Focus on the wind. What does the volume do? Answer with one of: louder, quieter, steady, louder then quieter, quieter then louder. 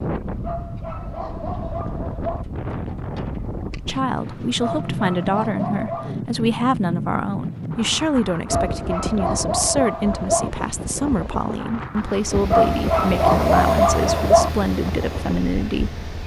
steady.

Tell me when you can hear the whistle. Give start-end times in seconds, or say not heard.
not heard.